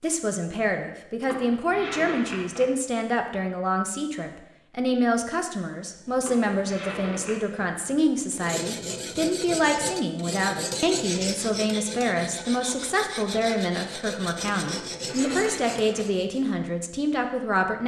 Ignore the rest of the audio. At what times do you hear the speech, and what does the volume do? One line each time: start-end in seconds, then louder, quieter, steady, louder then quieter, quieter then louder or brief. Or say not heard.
0.0-17.8 steady.